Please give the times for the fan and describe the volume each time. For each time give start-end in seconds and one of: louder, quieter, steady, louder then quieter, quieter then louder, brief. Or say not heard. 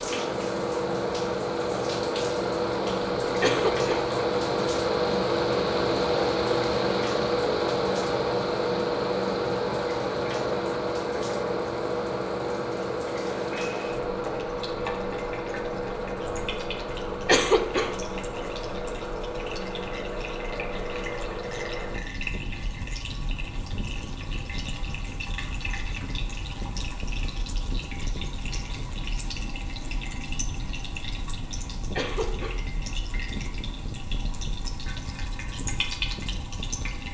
0.0-37.0 quieter.